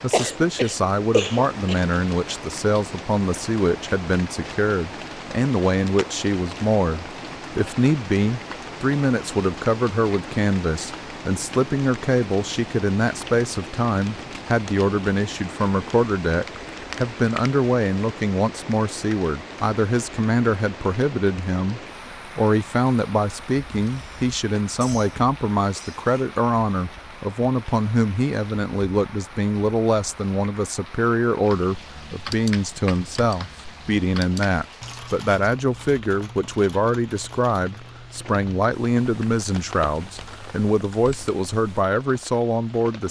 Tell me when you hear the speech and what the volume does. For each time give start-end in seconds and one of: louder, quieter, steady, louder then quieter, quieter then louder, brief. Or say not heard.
0.0-43.0 steady.